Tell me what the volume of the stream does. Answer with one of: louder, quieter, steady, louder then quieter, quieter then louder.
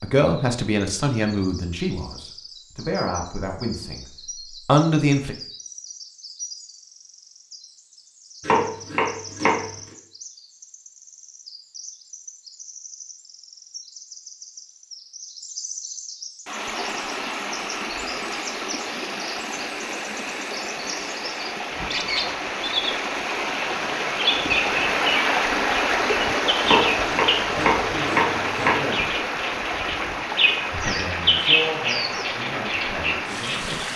louder then quieter.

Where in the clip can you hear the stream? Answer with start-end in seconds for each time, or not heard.
16.4-33.9.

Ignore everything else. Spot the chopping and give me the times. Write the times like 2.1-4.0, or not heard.
8.4-9.8, 26.6-28.9.